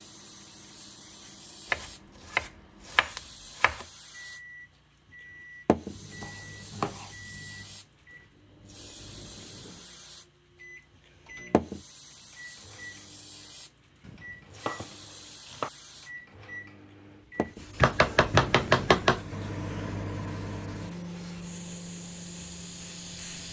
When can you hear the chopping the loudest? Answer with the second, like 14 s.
19 s.